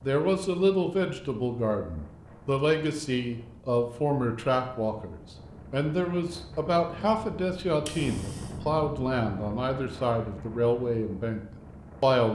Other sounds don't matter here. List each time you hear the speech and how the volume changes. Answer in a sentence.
The speech can be heard from 0.0 to 12.3 s, at a steady volume.